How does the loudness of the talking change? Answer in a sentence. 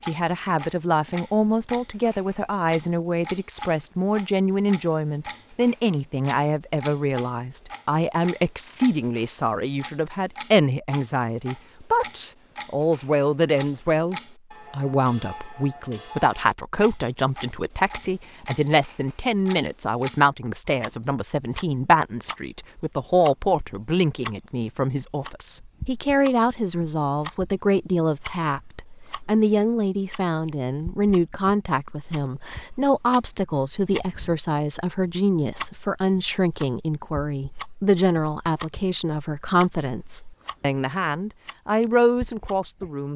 The volume of the talking stays about the same.